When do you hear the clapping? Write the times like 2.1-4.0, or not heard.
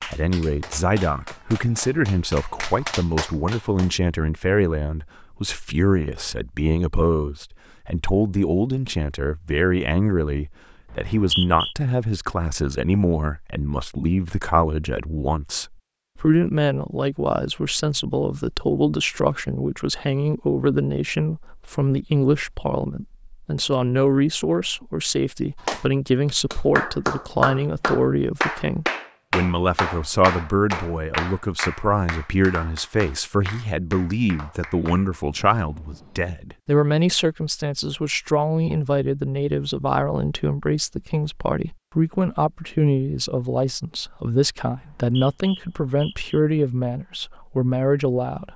0.0-4.0, 25.6-36.4.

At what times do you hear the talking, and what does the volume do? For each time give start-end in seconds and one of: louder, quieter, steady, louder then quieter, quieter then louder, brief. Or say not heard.
0.0-48.5 steady.